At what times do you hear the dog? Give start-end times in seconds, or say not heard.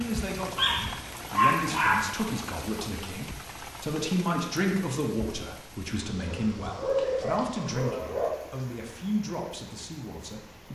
0.6-2.0, 6.2-8.3.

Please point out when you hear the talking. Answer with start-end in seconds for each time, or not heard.
0.0-10.6.